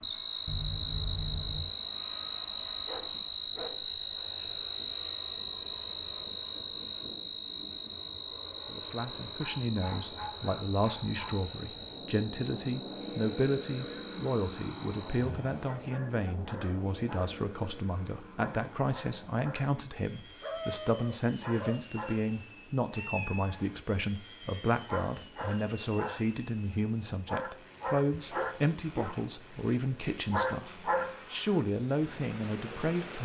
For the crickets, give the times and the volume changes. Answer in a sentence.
You can hear the crickets from 0.0 to 33.2 s, getting quieter then louder.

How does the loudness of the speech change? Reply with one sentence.
The loudness of the speech stays about the same.